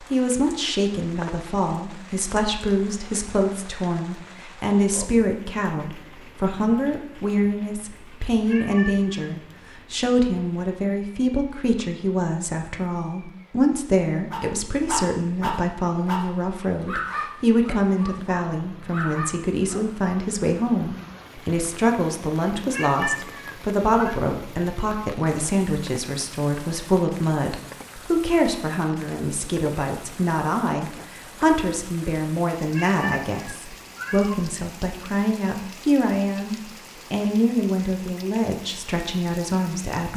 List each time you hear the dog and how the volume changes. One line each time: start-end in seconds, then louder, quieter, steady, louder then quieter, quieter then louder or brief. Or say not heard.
14.3-19.9 quieter then louder.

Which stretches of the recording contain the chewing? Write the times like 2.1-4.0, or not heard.
not heard.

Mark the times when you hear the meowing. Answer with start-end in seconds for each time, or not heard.
8.4-9.3, 22.7-24.2, 32.7-34.5.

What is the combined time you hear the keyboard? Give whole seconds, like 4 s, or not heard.
not heard.